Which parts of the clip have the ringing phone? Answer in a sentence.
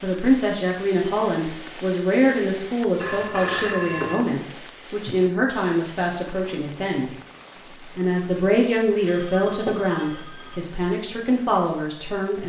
You can hear the ringing phone from 3.0 to 4.2 s and from 9.0 to 10.6 s.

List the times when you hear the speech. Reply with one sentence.
The speech can be heard from 0.0 to 7.1 s and from 8.0 to 12.4 s.